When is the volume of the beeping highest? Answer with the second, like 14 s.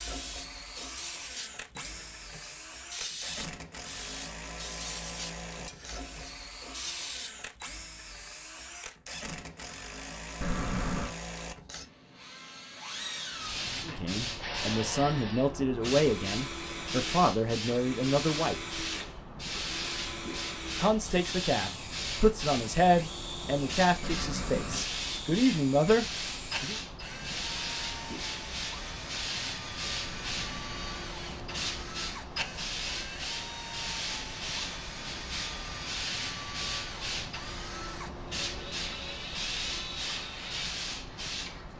11 s.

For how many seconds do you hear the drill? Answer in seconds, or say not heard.
42 s.